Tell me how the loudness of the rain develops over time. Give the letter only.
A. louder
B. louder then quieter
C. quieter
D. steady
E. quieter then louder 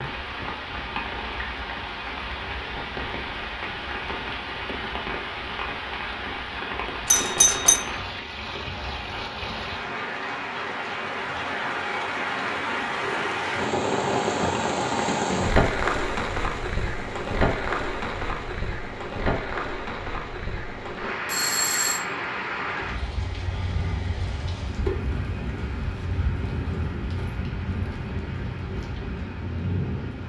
B.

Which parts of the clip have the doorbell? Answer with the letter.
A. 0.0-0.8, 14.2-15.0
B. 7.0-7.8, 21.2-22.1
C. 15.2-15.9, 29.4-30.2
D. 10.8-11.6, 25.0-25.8
B.